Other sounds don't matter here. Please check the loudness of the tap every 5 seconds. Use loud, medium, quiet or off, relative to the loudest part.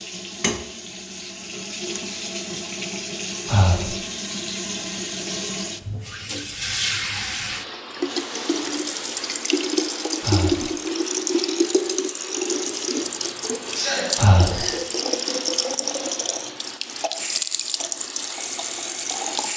medium, loud, loud, loud.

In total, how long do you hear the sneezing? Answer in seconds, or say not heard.
2 s.